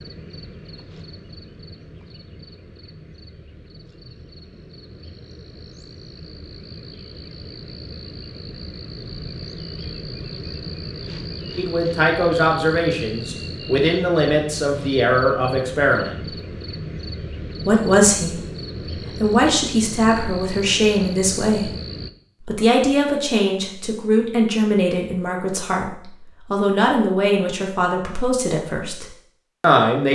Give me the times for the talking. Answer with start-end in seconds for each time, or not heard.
11.6-16.1, 17.6-18.4, 19.2-21.7, 22.4-30.1.